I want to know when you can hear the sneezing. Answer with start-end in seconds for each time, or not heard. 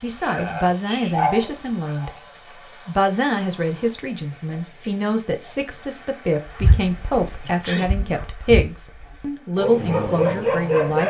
0.2-2.0, 7.4-7.9.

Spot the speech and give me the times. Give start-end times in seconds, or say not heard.
0.0-2.1, 2.9-11.0.